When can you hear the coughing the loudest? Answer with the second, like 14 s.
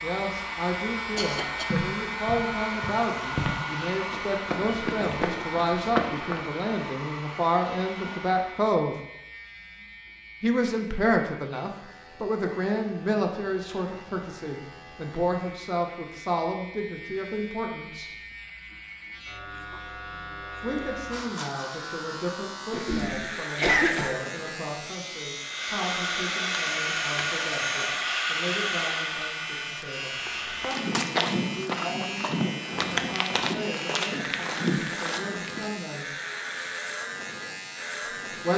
24 s.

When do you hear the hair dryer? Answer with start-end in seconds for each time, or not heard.
0.0-8.7, 25.4-31.0.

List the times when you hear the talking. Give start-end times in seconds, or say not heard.
0.0-8.9, 10.4-18.1, 20.6-36.1, 38.0-38.5.